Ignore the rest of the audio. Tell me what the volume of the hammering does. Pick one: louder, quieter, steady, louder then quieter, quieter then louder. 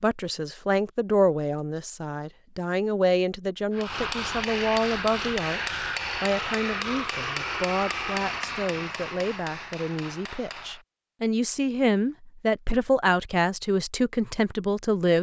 quieter.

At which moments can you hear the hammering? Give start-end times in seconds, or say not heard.
3.7-10.8.